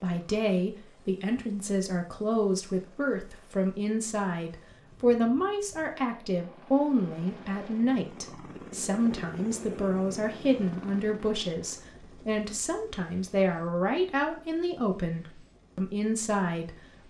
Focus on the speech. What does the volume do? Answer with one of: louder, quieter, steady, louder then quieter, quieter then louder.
steady.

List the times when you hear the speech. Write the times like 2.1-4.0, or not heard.
0.0-16.8.